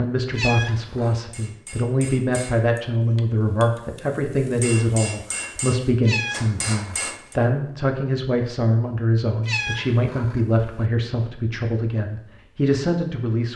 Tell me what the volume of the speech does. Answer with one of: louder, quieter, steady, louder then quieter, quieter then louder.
steady.